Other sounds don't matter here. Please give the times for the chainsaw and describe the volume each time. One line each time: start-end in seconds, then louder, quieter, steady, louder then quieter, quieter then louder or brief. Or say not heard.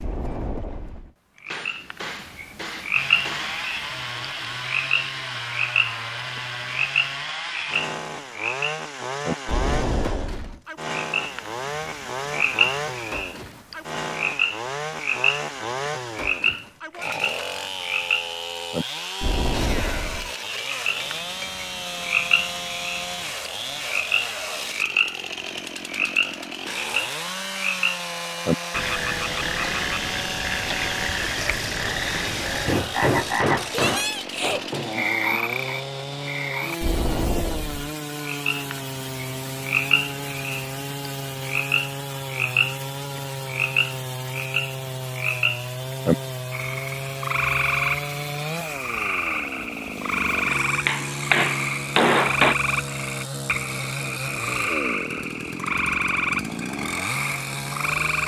2.9-58.2 steady.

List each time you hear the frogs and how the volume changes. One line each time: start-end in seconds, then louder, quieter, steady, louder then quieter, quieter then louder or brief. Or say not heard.
0.0-58.2 steady.